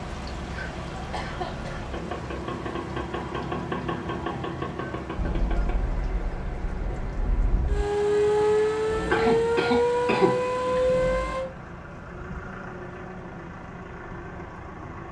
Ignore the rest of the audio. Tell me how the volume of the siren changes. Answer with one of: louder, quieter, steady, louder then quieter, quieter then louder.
louder.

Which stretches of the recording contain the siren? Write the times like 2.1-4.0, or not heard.
5.2-11.4.